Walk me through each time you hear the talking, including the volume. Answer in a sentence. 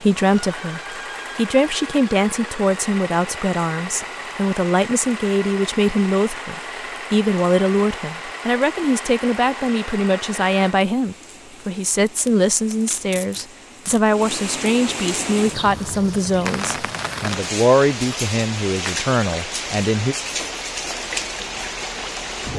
The talking can be heard from 0.0 to 20.1 s, at a steady volume.